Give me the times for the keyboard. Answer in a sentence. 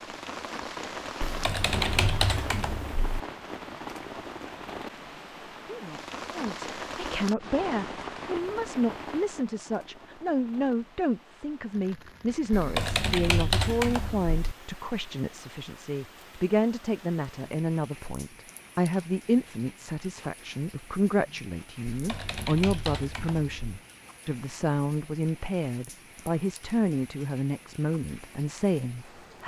You can hear the keyboard from 1.2 to 3.2 s, from 12.5 to 14.6 s and from 21.9 to 23.8 s.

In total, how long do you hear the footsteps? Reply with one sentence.
The footsteps can't be heard in this clip.